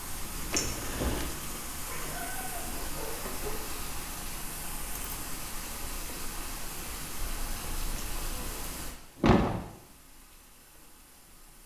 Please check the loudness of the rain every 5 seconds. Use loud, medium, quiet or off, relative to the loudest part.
loud, loud, quiet.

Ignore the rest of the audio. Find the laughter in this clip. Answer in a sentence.
The laughter can't be heard in this clip.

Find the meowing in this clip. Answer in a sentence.
You can hear the meowing from 1.9 to 3.7 s and from 7.2 to 8.6 s.